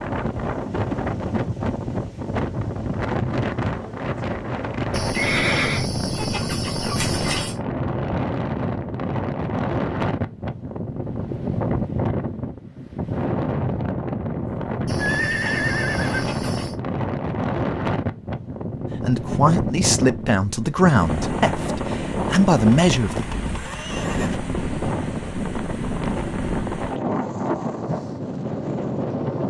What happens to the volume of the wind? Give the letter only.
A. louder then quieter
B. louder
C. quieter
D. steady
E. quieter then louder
D.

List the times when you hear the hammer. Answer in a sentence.
The hammer can't be heard in this clip.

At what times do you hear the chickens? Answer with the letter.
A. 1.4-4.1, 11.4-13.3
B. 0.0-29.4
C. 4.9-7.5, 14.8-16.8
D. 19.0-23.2
C.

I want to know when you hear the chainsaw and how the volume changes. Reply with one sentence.
You can't hear the chainsaw here.